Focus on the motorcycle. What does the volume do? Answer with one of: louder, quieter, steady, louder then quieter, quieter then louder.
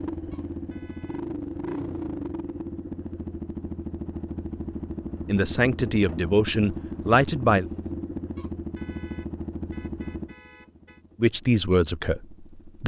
quieter.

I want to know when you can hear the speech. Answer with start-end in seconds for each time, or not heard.
5.2-7.7, 11.2-12.8.